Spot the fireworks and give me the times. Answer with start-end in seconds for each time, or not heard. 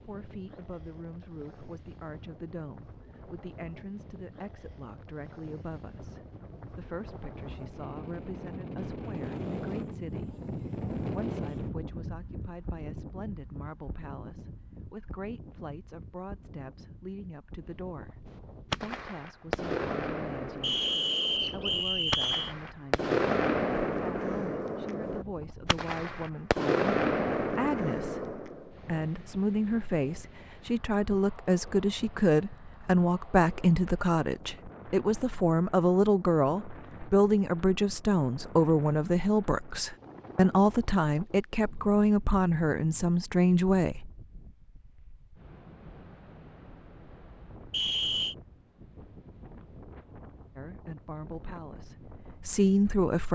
18.7-28.7.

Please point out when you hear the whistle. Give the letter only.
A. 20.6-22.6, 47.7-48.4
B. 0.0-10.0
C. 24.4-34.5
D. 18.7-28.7
A.